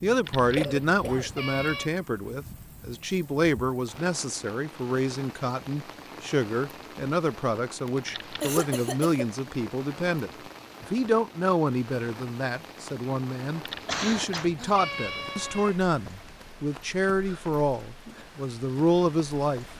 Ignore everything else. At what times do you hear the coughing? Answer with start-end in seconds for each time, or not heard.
0.6-1.3, 7.8-9.3, 13.8-14.5.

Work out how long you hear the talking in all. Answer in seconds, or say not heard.
20 s.